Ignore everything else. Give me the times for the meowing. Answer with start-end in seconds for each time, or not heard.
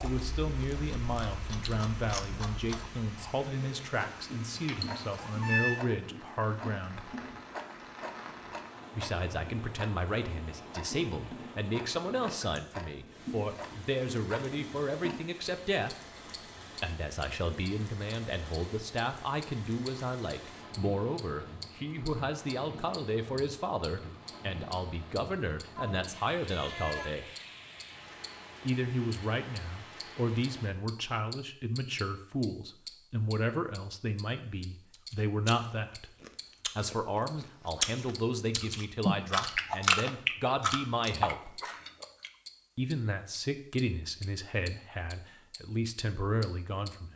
4.5-5.8, 25.8-27.1.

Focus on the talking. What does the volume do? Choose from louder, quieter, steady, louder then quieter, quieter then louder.
steady.